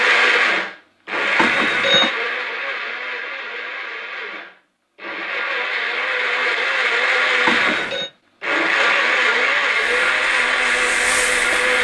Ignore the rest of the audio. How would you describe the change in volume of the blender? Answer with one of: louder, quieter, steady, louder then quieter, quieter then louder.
quieter then louder.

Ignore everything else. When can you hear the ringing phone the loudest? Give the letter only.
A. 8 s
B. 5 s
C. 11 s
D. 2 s
D.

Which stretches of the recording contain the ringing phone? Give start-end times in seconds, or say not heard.
1.4-2.1, 7.5-8.1.